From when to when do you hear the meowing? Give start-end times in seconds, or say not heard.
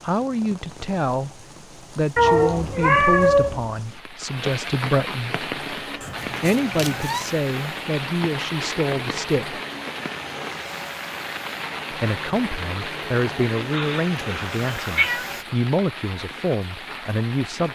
2.1-3.6, 6.0-7.3, 13.7-15.3.